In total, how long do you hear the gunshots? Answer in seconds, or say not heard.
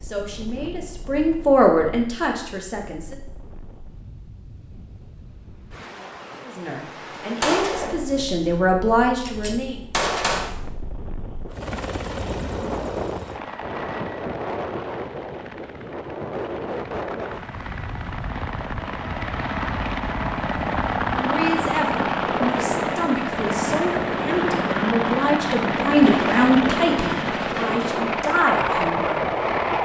4 s.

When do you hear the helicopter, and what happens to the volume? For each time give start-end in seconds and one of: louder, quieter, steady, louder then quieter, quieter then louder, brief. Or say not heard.
11.5-29.8 louder.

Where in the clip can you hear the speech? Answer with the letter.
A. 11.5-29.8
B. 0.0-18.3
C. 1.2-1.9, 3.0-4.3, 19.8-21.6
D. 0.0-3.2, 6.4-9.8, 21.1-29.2
D.